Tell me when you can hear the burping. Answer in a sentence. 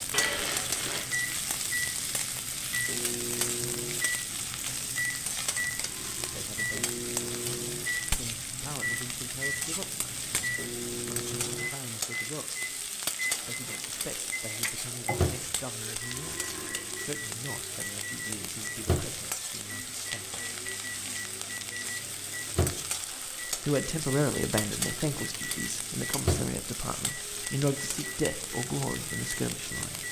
You can hear the burping from 5.8 to 6.5 s and from 15.9 to 17.1 s.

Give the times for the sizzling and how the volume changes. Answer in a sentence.
The sizzling can be heard from 0.0 to 30.0 s, at a steady volume.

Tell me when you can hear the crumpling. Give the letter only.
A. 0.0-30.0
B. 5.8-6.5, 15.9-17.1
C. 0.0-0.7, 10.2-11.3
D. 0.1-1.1
D.